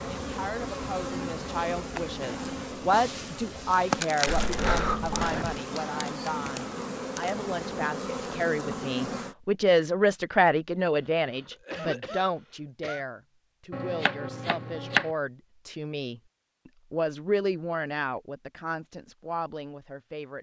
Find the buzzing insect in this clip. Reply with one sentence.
The buzzing insect can be heard from 0.0 to 9.3 s.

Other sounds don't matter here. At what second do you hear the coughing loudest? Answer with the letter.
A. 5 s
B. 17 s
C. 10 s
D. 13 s
A.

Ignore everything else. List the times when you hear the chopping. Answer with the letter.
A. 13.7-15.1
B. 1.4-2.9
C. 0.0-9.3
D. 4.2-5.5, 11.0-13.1
A.